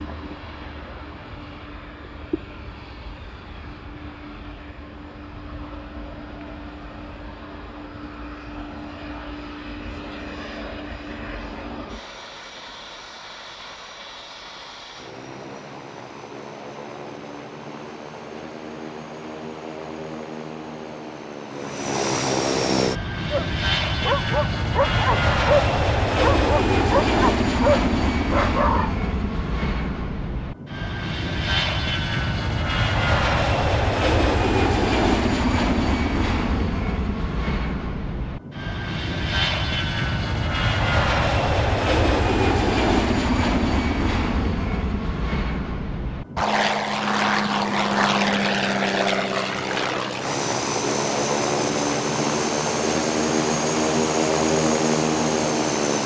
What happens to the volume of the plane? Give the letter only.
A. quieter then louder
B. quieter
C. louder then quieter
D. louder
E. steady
D.